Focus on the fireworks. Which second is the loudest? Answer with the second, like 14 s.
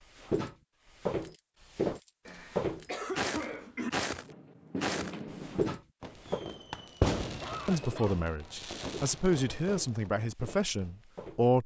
7 s.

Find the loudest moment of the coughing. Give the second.
3 s.